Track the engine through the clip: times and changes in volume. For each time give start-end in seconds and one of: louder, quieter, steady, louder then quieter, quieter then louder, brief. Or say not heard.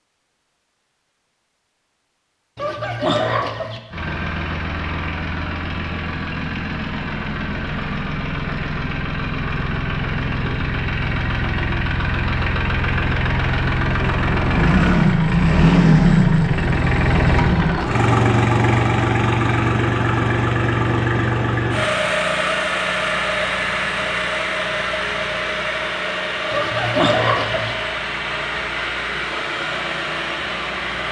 3.9-31.0 louder then quieter.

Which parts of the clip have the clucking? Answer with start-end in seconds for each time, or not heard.
2.5-3.8, 26.5-27.8.